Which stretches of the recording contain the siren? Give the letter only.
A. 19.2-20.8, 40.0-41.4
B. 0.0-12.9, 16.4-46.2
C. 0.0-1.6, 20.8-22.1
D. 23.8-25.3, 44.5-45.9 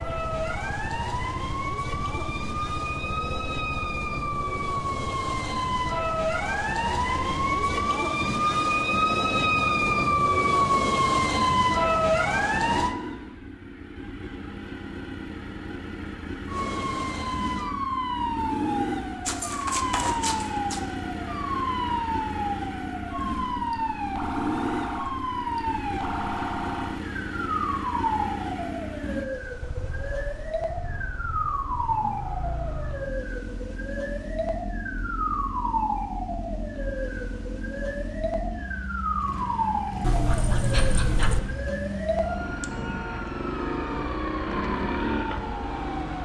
B.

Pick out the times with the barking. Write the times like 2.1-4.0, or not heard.
19.2-20.8, 40.0-41.4.